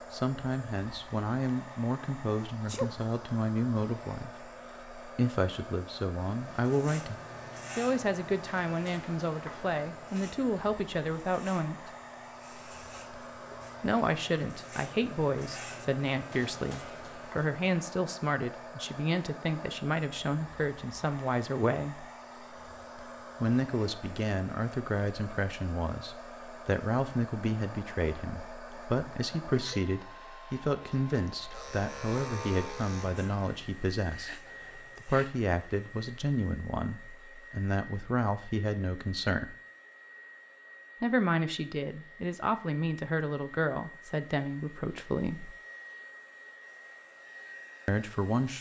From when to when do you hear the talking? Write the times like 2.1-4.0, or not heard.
0.1-7.2, 7.8-11.9, 13.8-22.1, 23.4-39.5, 41.0-45.5, 47.9-48.5.